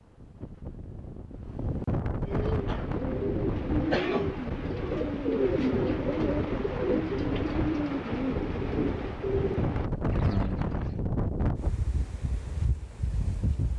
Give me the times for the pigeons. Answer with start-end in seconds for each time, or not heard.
2.2-11.0.